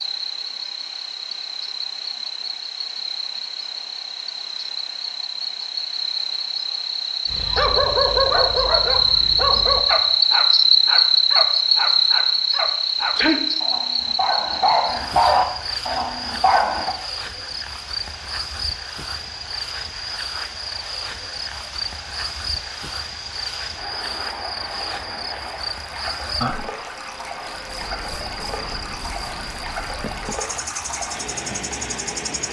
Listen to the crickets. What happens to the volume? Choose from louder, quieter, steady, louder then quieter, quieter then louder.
louder then quieter.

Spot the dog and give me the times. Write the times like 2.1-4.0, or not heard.
7.3-16.9.